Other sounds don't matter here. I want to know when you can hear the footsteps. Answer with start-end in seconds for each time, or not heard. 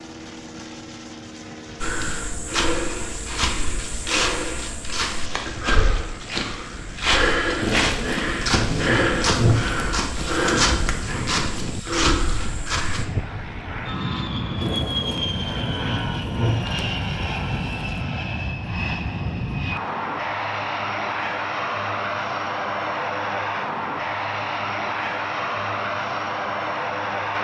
1.8-13.1.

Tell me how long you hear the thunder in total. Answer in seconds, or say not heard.
7 s.